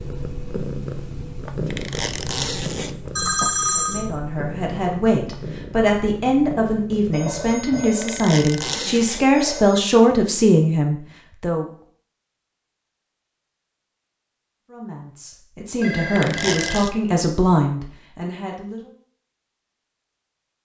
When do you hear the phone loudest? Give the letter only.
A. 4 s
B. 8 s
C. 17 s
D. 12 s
A.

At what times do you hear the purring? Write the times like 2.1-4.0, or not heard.
0.0-8.0.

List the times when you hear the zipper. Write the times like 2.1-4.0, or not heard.
1.7-3.2, 8.0-9.4, 16.1-16.9.